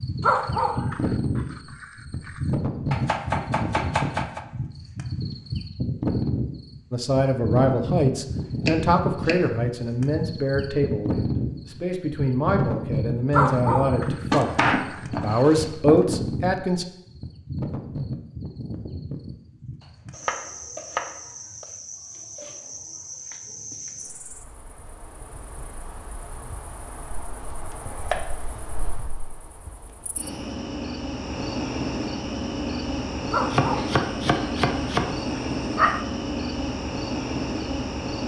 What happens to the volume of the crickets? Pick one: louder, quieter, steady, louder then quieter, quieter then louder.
quieter then louder.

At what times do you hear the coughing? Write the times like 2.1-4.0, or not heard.
not heard.